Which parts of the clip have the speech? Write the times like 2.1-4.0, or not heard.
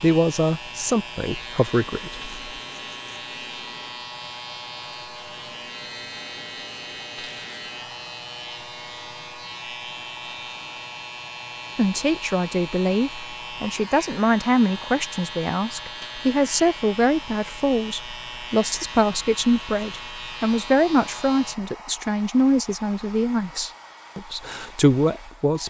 0.0-2.3, 11.8-25.6.